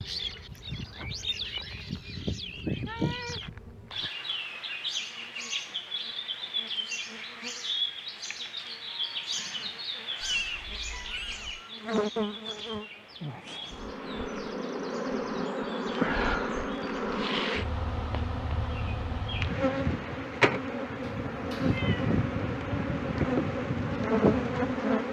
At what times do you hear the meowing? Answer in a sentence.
The meowing can be heard from 2.5 to 4.1 s, from 10.2 to 11.6 s and from 21.0 to 22.1 s.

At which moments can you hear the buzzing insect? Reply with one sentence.
You can hear the buzzing insect from 0.0 to 25.0 s.